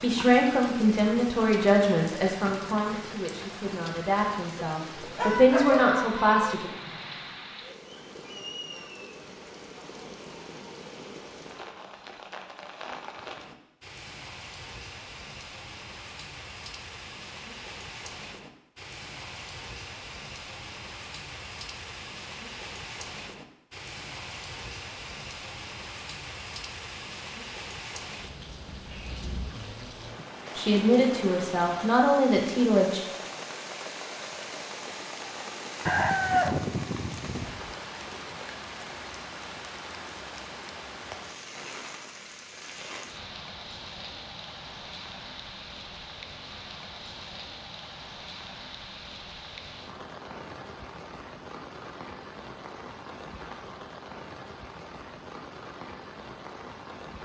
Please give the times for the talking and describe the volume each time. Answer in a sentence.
You can hear the talking from 0.0 to 6.7 s, getting quieter then louder; and briefly from 30.6 to 33.0 s.